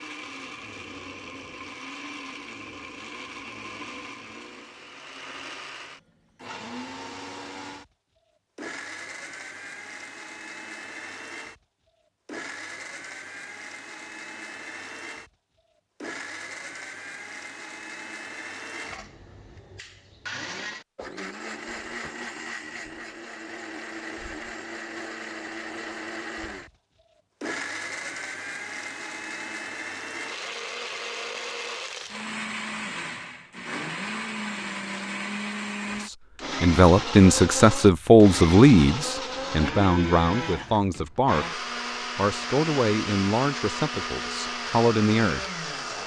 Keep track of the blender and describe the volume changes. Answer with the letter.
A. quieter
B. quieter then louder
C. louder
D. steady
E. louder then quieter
C.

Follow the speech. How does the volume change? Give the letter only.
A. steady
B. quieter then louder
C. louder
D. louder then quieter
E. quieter
E.